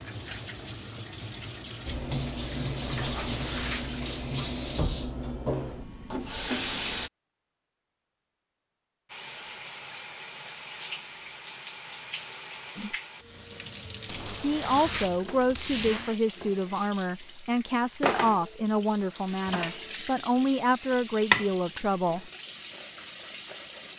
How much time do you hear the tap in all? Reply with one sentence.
The tap can be heard for 22 seconds in total.